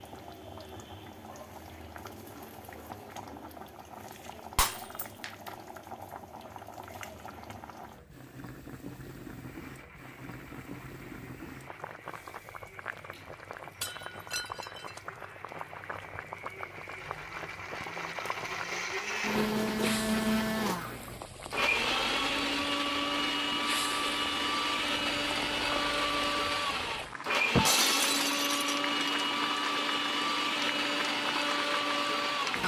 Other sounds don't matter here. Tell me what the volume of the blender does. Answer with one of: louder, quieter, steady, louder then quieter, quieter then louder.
louder.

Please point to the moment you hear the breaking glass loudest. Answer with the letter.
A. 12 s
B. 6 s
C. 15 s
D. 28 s
D.